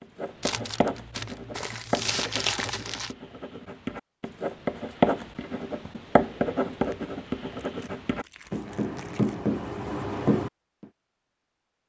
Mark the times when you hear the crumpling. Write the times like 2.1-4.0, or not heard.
0.4-3.1, 6.8-9.4.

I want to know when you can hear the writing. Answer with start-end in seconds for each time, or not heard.
0.0-10.8.